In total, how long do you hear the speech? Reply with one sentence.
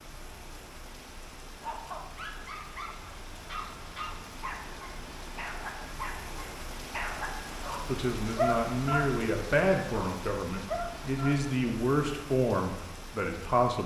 You can hear the speech for 6 seconds altogether.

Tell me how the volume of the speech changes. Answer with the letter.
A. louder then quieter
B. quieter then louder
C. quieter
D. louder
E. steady
E.